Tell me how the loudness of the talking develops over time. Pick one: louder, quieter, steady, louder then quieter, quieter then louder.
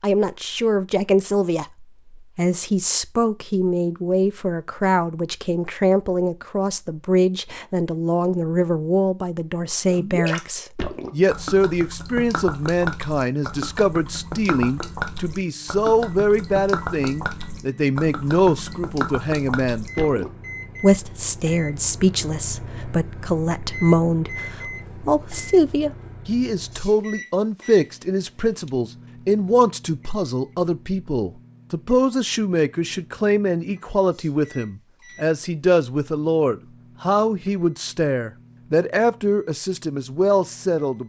steady.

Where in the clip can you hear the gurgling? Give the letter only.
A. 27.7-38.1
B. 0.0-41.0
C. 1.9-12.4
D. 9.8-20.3
D.